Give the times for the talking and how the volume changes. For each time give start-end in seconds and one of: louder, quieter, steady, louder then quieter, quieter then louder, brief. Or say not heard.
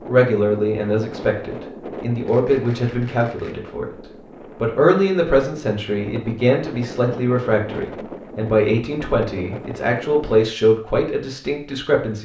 0.1-12.2 steady.